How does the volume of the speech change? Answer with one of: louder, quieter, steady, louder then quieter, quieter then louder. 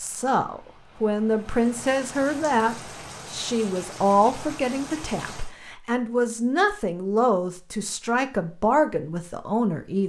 steady.